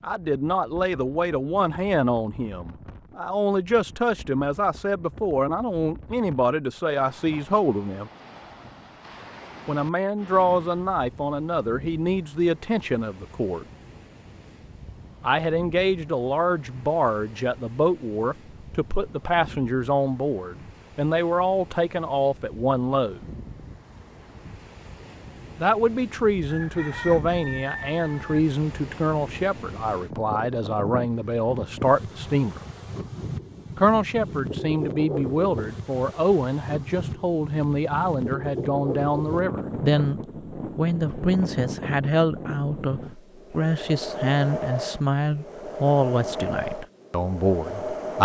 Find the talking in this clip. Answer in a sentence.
The talking can be heard from 0.0 to 8.1 s, from 9.7 to 13.7 s, from 15.2 to 23.2 s, from 25.6 to 32.6 s and from 33.8 to 48.2 s.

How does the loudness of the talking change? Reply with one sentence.
The loudness of the talking stays about the same.